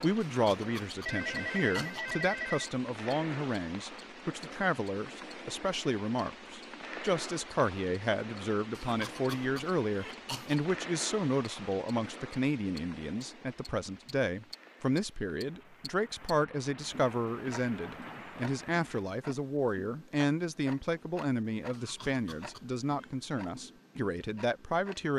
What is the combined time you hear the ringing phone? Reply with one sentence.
The ringing phone can be heard for 2 seconds in total.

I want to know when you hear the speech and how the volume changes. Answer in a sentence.
You can hear the speech from 0.0 to 25.1 s, at a steady volume.